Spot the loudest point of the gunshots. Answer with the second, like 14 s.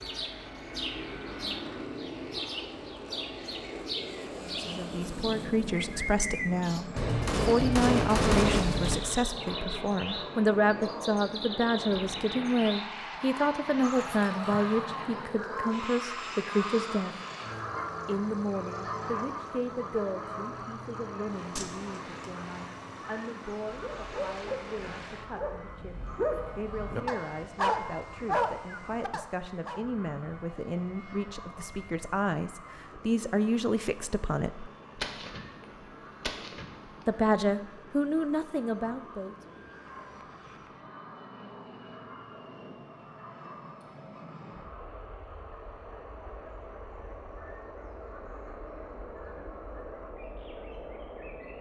8 s.